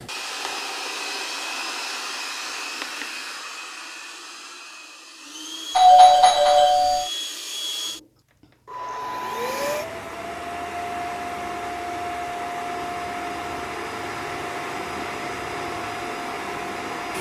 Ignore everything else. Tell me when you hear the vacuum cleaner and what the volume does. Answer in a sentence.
The vacuum cleaner can be heard from 0.0 to 17.1 s, getting quieter then louder.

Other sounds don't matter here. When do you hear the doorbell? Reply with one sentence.
You can hear the doorbell from 5.8 to 7.1 s.